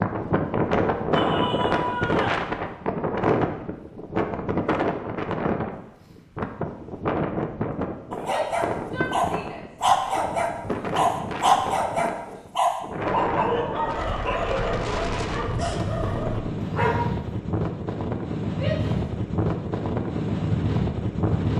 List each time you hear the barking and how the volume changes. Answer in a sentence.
You can hear the barking from 8.1 to 17.1 s, getting quieter.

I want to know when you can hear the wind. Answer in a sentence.
You can hear the wind from 0.0 to 21.5 s.